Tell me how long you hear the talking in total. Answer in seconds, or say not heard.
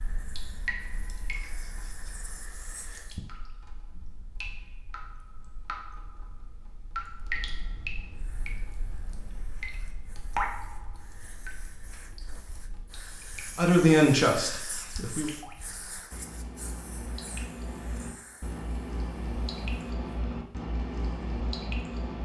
2 s.